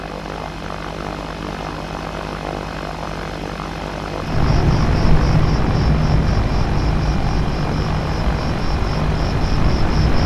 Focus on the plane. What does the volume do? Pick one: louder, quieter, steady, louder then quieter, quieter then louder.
steady.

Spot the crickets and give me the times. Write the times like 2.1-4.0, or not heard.
4.2-10.2.